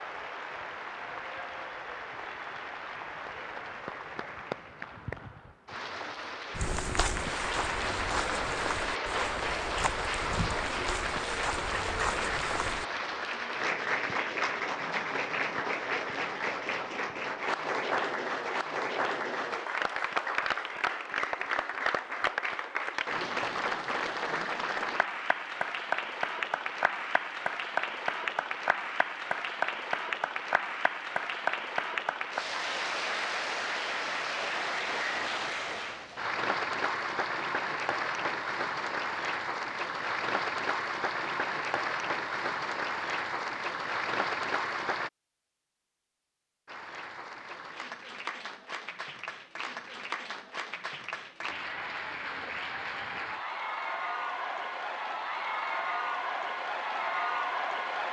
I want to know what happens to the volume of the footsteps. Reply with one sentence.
The loudness of the footsteps stays about the same.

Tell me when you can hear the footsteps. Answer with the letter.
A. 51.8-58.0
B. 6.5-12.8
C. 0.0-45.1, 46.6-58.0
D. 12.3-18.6
B.